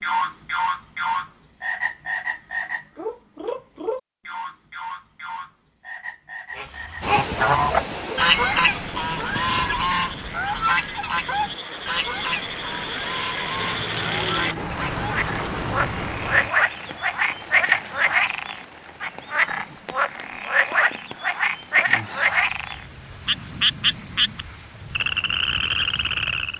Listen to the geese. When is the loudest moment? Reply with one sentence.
The loudest moment of the geese is at 8 seconds.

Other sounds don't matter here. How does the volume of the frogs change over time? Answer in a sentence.
The loudness of the frogs goes down, then up.